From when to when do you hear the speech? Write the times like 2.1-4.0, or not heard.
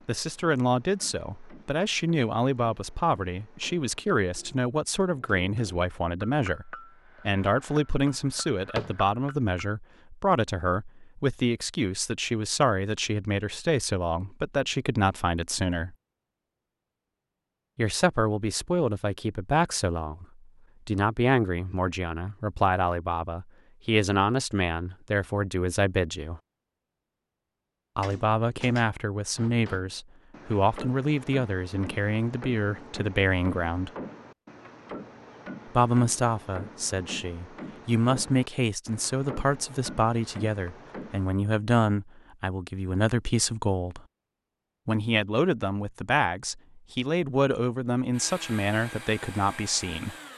0.1-15.9, 17.8-20.2, 20.9-26.4, 27.9-33.9, 35.8-44.0, 44.9-50.1.